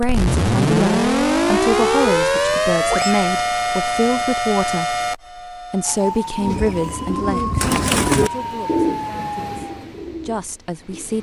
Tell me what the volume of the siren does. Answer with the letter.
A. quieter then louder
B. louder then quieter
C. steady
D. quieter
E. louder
D.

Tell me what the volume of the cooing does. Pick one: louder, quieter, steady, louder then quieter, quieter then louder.
louder then quieter.